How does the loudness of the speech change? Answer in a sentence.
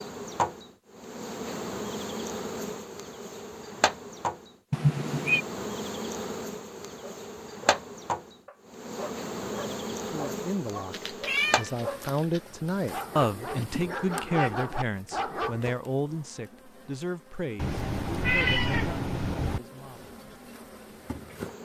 The volume of the speech goes up, then down.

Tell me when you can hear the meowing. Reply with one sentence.
You can hear the meowing from 4.7 to 5.5 s, from 10.9 to 12.4 s and from 17.6 to 19.6 s.